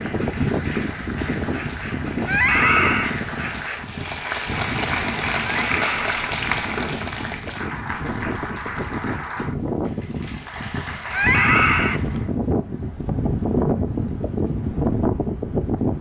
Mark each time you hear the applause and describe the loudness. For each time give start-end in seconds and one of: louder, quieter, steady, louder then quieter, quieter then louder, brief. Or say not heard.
0.0-12.3 louder then quieter.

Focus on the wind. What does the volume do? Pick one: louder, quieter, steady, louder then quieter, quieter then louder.
quieter then louder.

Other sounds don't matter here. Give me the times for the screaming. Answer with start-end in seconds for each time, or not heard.
2.2-3.1, 5.6-6.2, 11.1-12.0.